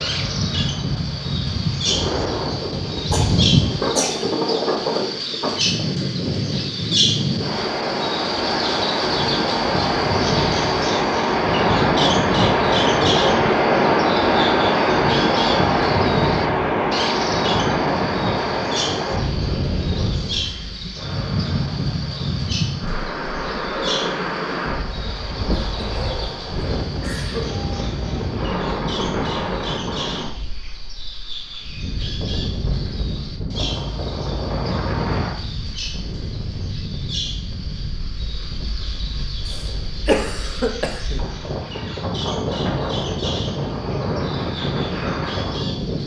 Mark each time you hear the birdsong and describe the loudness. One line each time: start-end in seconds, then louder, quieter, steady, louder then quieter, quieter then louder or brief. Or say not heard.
0.0-46.0 quieter.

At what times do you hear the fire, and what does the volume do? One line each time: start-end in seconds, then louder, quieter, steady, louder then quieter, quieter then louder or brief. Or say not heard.
not heard.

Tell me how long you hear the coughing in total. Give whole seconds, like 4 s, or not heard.
5 s.